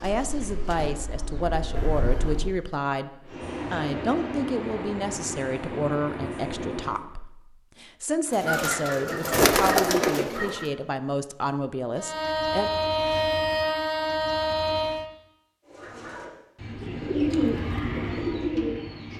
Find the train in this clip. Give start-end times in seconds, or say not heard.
3.2-7.0, 11.9-15.1.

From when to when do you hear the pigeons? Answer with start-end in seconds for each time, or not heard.
0.0-2.5, 8.3-10.7, 15.7-19.1.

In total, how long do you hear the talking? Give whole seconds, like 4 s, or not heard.
13 s.